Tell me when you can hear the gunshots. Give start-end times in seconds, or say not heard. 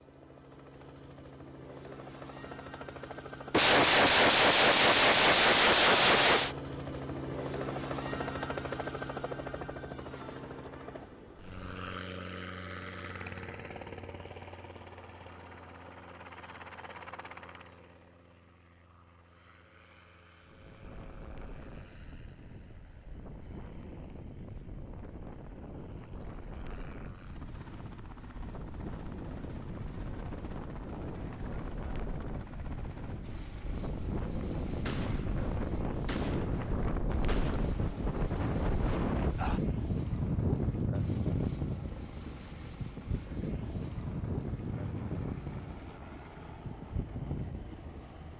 3.5-6.5, 34.3-38.0.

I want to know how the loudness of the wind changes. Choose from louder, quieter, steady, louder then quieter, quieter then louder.
louder then quieter.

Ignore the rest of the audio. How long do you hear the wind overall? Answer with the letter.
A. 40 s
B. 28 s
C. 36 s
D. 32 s
B.